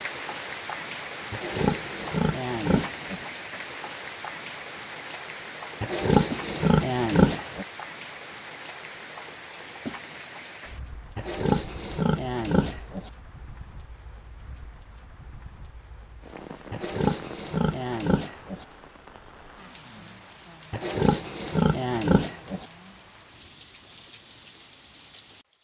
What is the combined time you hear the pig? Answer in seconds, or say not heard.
10 s.